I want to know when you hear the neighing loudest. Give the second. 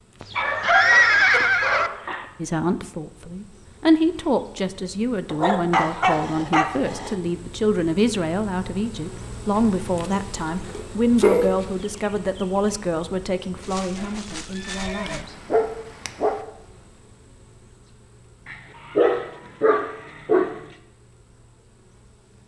1 s.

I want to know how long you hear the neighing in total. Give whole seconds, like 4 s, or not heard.
3 s.